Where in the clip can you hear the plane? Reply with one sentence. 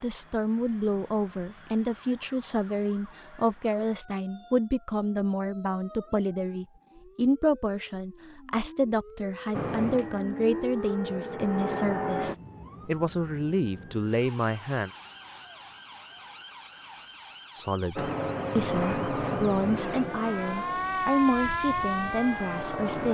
The plane can be heard from 9.5 to 12.3 s and from 17.9 to 23.1 s.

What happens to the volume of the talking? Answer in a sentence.
The volume of the talking stays about the same.